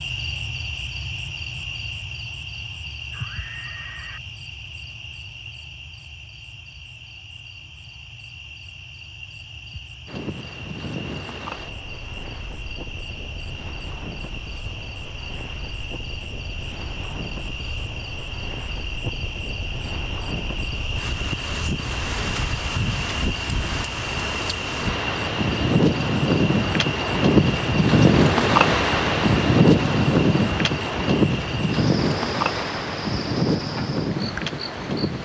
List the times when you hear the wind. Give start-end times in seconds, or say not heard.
10.1-35.2.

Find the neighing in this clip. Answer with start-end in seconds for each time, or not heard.
3.1-4.2.